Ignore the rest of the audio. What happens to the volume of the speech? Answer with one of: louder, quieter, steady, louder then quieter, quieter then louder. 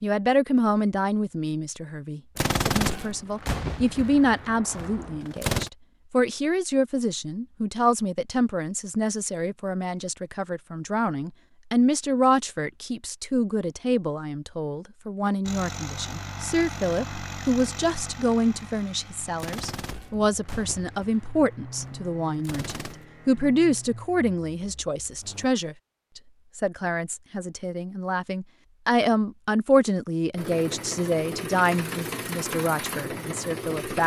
steady.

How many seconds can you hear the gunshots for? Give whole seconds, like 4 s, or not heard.
7 s.